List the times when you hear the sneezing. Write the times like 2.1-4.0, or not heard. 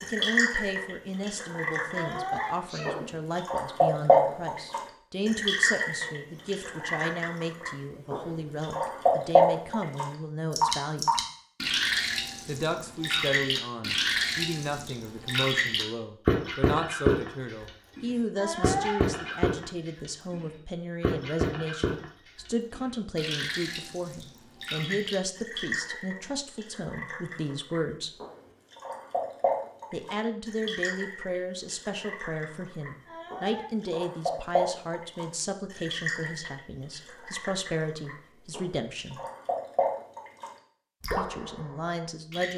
1.9-3.1, 18.4-19.0, 33.0-33.7.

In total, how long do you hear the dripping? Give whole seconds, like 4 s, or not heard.
42 s.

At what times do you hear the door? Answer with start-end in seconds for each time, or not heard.
not heard.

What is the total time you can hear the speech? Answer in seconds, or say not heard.
37 s.